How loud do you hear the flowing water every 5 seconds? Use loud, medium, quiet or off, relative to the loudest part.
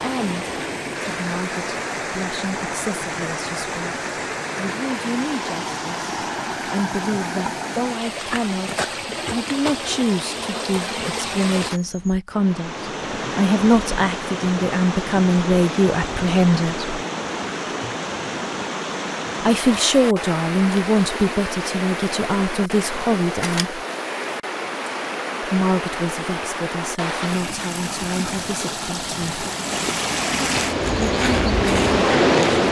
medium, medium, medium, medium, medium, medium, loud.